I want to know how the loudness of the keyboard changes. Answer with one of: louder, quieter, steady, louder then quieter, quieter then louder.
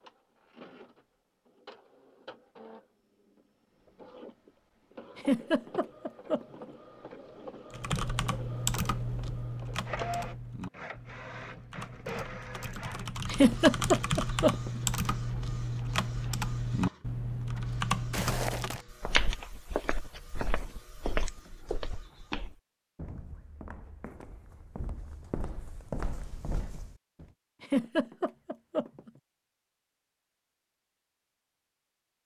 quieter then louder.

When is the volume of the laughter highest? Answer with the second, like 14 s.
14 s.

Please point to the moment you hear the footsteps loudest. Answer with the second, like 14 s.
19 s.